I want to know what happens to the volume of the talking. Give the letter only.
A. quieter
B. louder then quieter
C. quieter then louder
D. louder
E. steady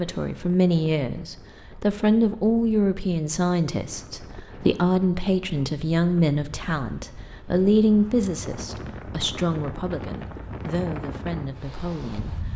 A.